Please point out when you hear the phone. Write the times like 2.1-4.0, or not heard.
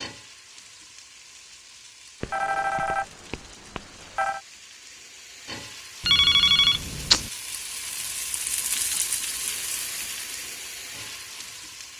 2.2-4.4, 6.0-7.3.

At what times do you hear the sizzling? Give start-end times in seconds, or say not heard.
0.0-11.9.